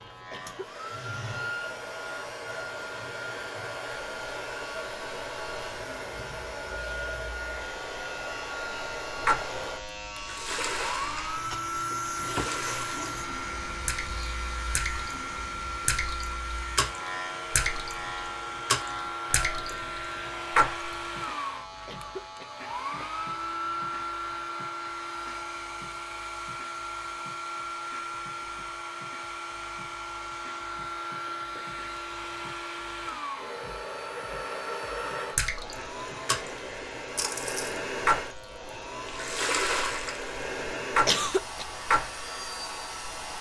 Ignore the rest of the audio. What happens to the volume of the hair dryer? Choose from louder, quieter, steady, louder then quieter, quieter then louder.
steady.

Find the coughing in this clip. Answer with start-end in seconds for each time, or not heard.
0.3-0.8, 21.9-23.1, 41.0-41.6.